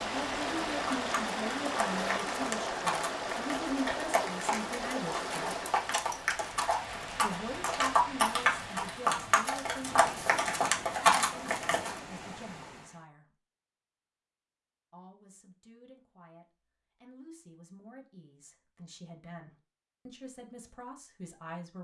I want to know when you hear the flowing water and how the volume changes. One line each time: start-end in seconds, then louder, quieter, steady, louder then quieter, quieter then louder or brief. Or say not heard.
0.0-13.1 quieter.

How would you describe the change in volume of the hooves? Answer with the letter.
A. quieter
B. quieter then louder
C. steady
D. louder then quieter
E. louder
E.